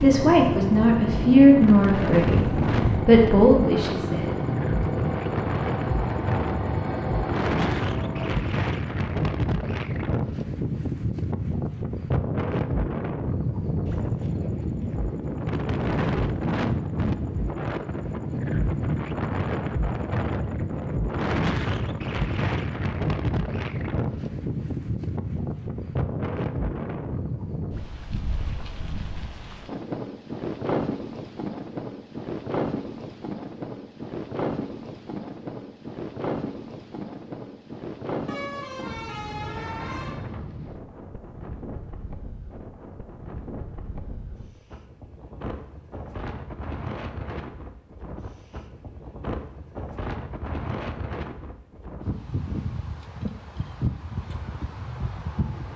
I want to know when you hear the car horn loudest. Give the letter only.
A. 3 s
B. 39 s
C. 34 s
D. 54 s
A.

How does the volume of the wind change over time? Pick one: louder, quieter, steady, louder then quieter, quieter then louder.
quieter.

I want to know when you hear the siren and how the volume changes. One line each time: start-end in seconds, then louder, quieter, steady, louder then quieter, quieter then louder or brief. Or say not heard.
not heard.